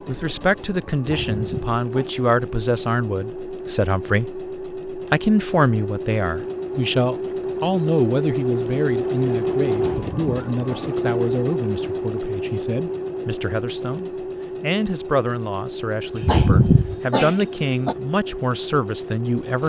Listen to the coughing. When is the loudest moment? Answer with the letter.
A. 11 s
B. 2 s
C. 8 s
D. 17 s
D.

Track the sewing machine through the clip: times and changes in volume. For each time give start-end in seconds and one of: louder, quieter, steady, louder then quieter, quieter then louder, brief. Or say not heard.
0.0-19.6 louder then quieter.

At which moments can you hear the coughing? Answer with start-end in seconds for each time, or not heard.
0.9-2.0, 9.8-10.9, 16.1-17.9.